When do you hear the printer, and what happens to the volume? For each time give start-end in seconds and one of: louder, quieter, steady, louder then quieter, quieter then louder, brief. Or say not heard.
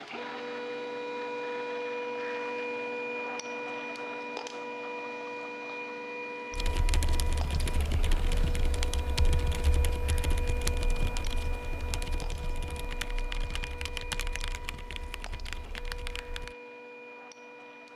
0.0-17.9 quieter.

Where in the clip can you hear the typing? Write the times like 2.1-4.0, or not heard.
6.5-16.6.